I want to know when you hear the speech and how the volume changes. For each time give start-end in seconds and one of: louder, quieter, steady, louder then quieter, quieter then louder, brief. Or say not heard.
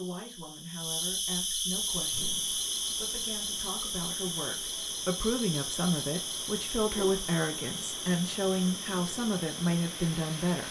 0.0-10.6 louder.